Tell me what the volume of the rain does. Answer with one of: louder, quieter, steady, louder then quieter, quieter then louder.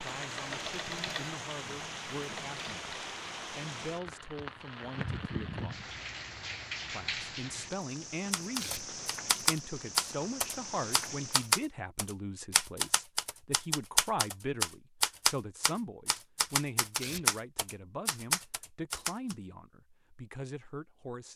steady.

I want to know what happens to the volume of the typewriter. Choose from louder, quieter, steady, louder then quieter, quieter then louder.
steady.